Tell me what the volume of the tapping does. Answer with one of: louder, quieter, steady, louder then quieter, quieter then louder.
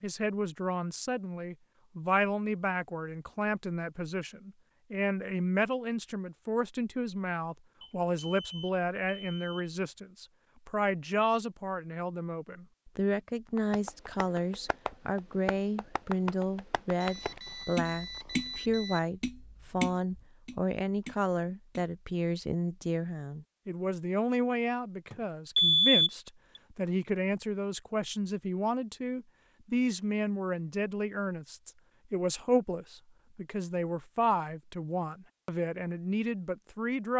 louder.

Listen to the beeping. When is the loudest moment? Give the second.
26 s.